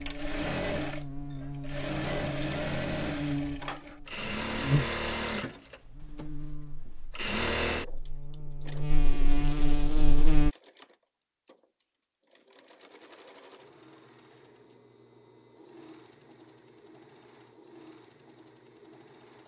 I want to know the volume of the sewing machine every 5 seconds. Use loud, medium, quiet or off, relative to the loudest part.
loud, loud, quiet, quiet.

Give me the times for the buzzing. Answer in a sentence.
The buzzing can be heard from 0.0 to 10.5 s.